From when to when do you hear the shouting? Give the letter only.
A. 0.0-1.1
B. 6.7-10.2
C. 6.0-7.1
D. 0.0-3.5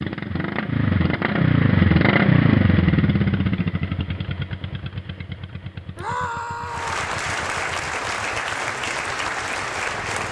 C.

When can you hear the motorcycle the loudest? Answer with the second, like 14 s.
2 s.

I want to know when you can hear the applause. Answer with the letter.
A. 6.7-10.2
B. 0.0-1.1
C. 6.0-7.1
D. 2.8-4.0
A.